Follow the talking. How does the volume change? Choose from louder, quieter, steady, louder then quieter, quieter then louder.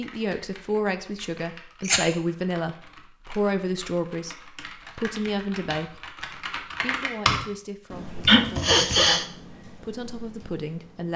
quieter.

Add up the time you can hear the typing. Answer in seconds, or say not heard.
11 s.